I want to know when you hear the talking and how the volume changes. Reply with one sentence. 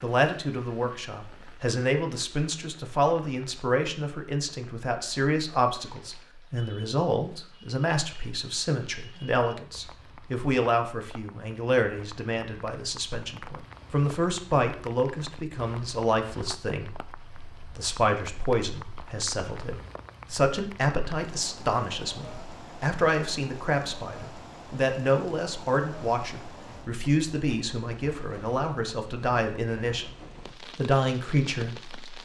The talking can be heard from 0.0 to 30.1 s, at a steady volume; and briefly from 30.8 to 32.2 s.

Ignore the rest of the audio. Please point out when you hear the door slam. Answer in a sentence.
The door slam can't be heard in this clip.